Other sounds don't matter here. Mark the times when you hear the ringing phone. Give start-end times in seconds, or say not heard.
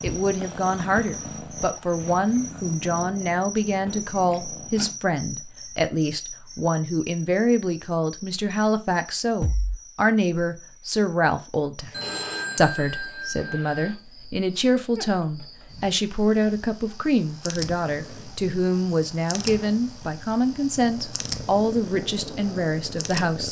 11.9-13.9.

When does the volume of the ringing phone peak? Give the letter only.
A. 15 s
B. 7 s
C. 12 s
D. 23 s
C.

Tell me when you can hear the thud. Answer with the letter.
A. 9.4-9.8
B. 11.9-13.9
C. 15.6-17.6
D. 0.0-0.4
A.